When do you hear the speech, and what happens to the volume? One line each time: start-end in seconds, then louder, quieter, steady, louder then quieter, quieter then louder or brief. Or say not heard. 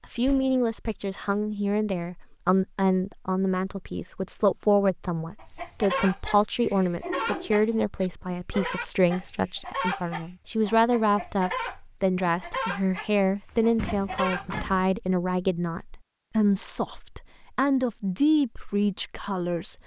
0.1-19.8 steady.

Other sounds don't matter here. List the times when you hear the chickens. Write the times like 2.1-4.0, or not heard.
5.3-6.4, 7.0-14.7.